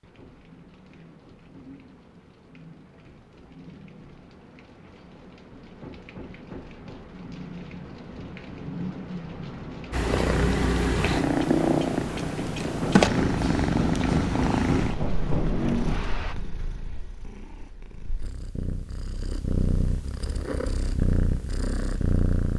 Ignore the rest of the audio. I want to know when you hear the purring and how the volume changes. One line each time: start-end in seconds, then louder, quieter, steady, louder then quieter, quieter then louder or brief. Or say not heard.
9.9-22.5 quieter then louder.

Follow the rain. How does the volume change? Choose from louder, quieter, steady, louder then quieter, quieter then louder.
louder.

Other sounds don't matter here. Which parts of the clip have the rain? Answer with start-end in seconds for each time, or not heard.
0.0-16.4.